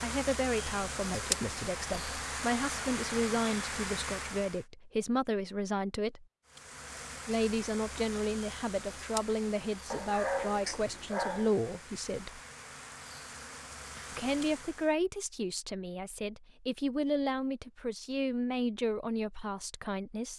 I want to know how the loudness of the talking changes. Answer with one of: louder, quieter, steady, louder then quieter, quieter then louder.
steady.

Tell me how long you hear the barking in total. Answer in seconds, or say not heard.
2 s.